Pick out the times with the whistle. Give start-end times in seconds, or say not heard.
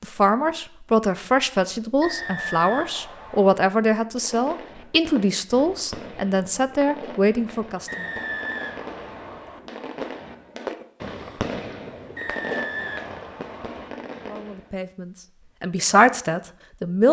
2.0-3.6, 7.8-9.6, 12.2-13.9.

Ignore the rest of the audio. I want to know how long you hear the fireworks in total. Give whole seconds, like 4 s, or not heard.
11 s.